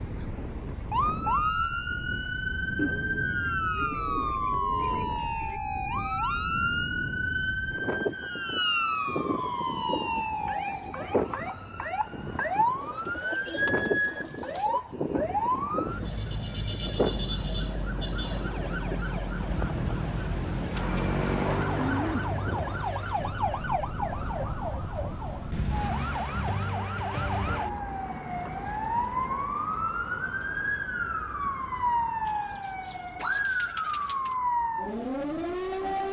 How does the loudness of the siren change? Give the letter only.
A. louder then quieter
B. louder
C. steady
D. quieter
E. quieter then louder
C.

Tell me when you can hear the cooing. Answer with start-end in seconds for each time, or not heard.
2.8-5.6, 12.8-14.8, 20.8-22.4, 32.2-34.4.